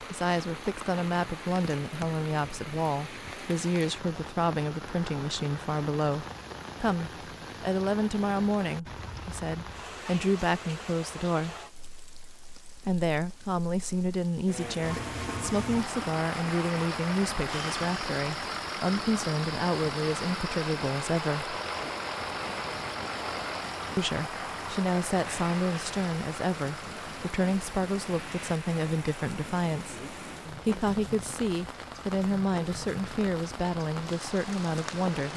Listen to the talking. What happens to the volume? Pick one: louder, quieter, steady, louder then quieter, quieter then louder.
steady.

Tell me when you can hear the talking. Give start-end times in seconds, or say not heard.
0.0-11.6, 12.8-21.6, 23.9-35.3.